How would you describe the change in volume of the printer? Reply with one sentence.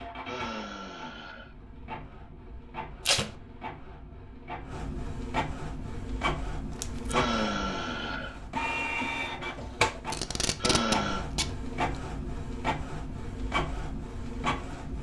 The loudness of the printer goes up.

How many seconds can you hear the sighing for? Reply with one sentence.
You can hear the sighing for 3 seconds altogether.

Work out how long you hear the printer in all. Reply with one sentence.
The printer can be heard for 15 seconds in total.